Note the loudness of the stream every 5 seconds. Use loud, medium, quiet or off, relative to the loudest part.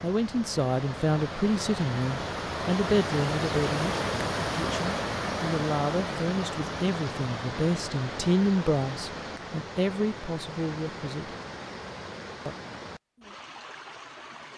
loud, loud, medium.